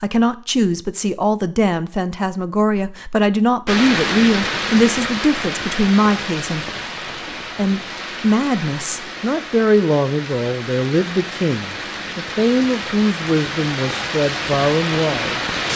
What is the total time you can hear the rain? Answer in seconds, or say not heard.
12 s.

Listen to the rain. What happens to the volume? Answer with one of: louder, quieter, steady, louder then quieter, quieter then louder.
quieter then louder.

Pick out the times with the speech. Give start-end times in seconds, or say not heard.
0.0-6.7, 7.5-15.4.